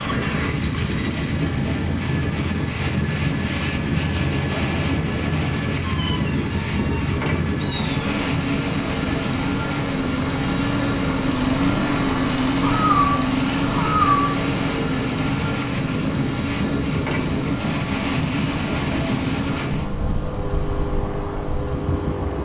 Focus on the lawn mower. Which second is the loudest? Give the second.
12 s.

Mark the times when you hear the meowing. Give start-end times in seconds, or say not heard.
5.8-8.2, 12.6-14.4.